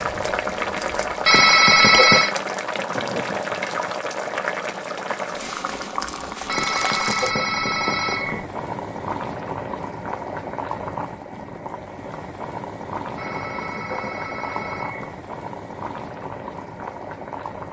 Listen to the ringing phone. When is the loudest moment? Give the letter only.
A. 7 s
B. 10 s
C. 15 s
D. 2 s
D.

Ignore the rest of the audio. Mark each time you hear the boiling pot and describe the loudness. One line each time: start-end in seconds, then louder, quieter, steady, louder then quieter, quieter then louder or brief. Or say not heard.
0.0-17.6 quieter.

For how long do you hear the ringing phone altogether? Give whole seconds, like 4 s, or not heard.
5 s.